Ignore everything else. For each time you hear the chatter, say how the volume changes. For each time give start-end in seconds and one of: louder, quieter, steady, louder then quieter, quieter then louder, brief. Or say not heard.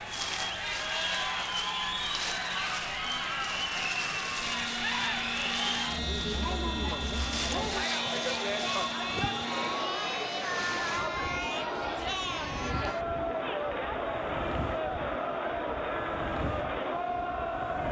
0.0-17.8 steady.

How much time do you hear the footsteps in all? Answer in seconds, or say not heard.
not heard.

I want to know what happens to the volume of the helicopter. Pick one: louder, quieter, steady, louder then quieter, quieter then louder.
steady.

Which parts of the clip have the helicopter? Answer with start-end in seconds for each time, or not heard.
4.3-9.9.